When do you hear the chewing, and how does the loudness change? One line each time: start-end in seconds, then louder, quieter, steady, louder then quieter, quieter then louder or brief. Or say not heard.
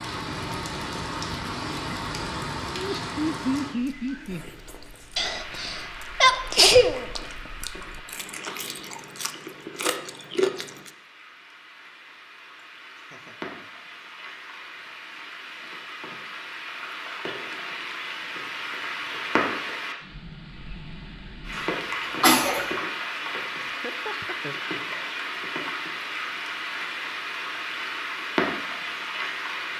3.8-10.9 louder.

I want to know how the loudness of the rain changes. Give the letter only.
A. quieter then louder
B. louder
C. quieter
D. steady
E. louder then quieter
A.